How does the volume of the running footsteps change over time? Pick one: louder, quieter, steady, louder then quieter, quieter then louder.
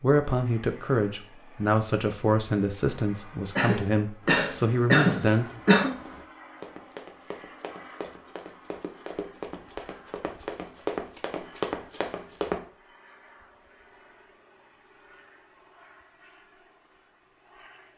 louder.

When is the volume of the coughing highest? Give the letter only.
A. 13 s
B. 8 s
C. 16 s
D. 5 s
D.